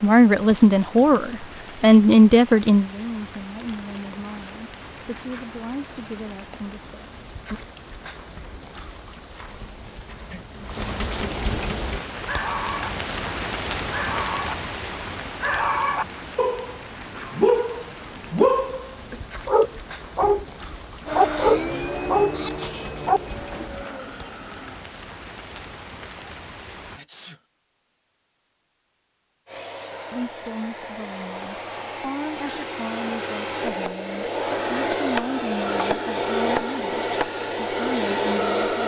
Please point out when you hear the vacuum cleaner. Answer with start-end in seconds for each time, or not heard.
21.1-24.9, 29.4-38.8.